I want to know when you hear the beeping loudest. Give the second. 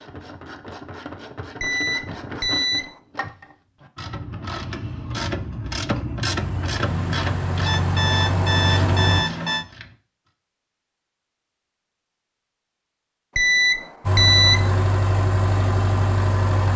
14 s.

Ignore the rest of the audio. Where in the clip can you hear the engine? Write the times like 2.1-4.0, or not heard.
6.2-9.2, 14.0-16.7.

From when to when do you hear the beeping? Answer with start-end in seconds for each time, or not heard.
1.6-3.0, 6.8-9.7, 13.3-14.8.